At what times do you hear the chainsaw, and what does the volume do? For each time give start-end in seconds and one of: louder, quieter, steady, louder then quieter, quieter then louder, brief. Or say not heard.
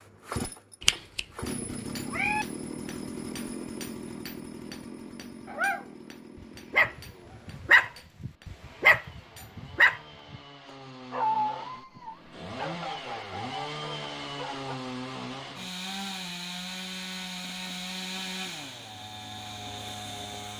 0.0-20.5 quieter then louder.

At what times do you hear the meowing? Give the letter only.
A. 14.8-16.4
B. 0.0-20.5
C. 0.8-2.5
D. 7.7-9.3
C.